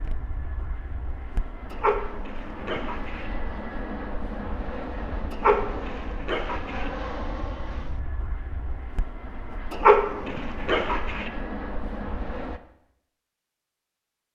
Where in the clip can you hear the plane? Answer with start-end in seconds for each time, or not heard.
0.0-12.6.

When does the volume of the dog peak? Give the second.
10 s.